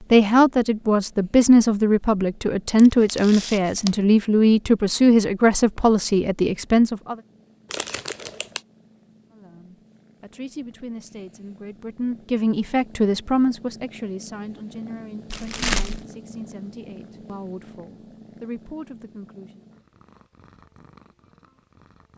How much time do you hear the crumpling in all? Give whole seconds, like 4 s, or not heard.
3 s.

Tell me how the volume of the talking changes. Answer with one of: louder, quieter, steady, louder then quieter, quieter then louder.
quieter.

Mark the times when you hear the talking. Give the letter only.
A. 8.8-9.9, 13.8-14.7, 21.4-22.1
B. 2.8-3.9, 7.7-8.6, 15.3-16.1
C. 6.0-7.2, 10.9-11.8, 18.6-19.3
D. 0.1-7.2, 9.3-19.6
D.